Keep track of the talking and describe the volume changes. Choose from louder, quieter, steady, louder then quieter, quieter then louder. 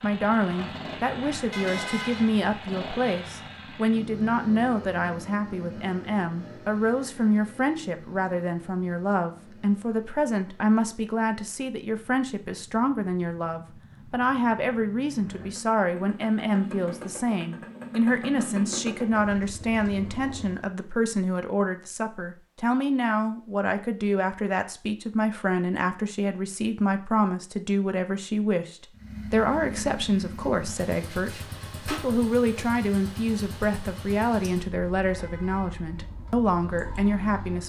steady.